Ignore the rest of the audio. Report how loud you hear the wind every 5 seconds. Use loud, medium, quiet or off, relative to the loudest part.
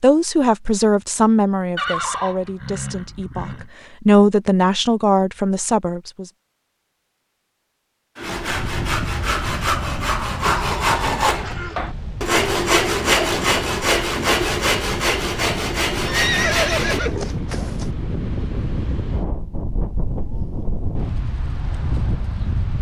off, loud, medium, loud, loud.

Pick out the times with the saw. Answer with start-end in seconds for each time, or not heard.
8.2-17.0.